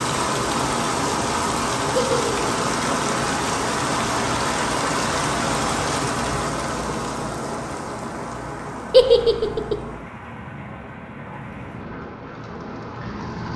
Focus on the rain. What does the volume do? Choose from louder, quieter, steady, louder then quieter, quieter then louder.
quieter.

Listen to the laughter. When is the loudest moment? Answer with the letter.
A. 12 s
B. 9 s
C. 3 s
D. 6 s
B.